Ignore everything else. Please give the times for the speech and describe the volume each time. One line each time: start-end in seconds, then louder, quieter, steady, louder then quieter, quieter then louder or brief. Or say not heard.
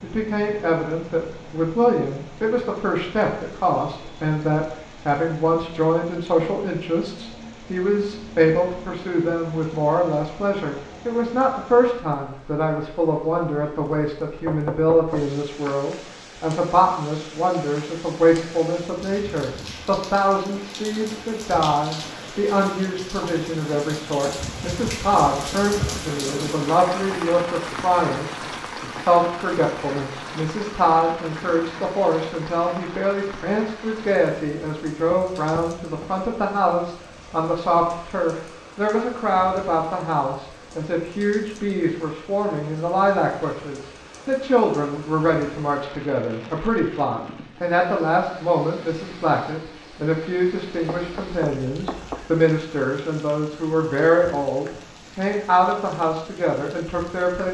0.0-57.4 steady.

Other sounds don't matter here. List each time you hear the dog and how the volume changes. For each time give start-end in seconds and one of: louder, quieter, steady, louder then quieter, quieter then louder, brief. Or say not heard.
not heard.